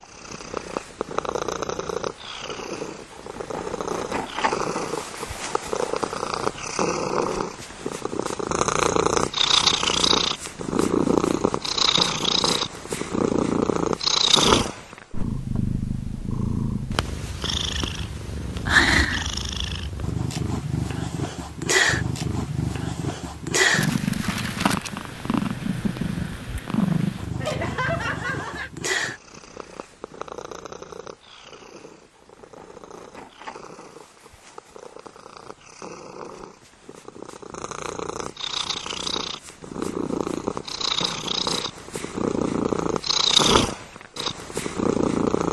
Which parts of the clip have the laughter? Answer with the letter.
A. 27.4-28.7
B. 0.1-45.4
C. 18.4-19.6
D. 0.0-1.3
A.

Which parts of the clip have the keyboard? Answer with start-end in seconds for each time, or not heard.
not heard.